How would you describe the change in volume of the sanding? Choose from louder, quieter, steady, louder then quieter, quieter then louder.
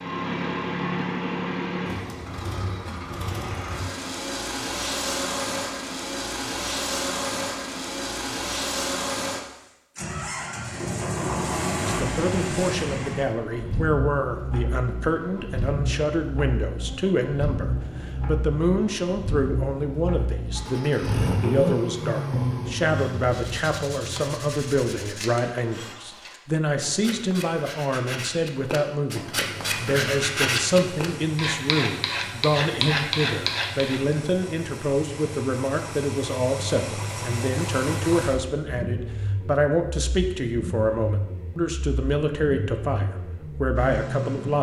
louder.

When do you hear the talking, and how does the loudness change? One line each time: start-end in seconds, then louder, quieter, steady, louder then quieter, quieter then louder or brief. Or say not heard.
11.8-44.5 steady.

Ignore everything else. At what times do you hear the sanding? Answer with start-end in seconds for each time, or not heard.
22.9-34.1.